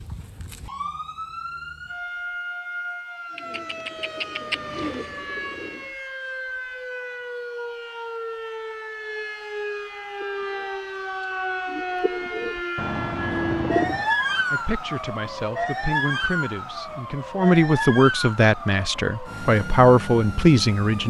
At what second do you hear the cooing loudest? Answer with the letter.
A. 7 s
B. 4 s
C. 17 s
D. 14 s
D.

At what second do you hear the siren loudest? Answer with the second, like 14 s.
14 s.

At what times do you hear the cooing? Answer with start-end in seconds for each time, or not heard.
3.3-6.0, 10.2-14.1.